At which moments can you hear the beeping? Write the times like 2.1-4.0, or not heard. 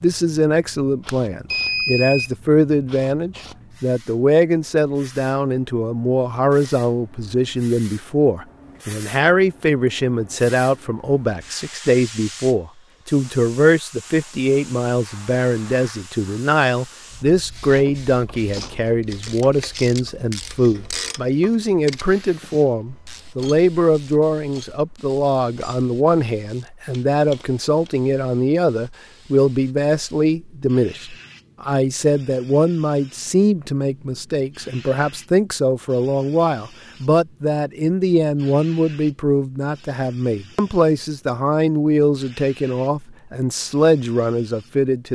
1.1-2.4.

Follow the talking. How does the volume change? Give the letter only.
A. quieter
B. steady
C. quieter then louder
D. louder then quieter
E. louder
B.